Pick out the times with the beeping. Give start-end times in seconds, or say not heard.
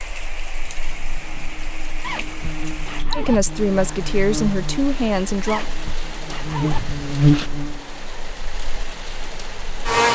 not heard.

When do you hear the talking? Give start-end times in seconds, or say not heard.
3.1-5.7.